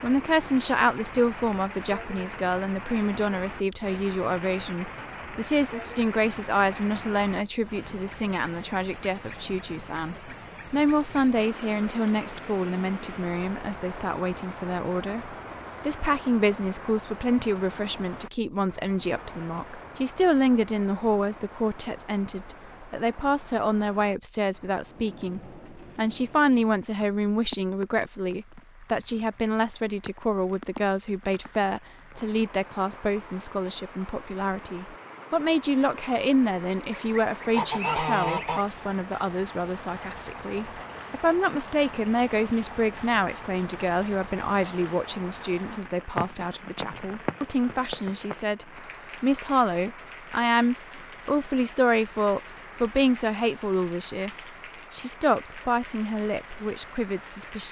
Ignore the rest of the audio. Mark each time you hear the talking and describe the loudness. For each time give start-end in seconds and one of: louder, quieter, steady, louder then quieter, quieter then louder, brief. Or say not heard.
0.0-54.3 steady
54.9-57.6 brief.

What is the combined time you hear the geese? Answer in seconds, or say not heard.
2 s.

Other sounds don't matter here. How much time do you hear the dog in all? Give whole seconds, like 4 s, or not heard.
not heard.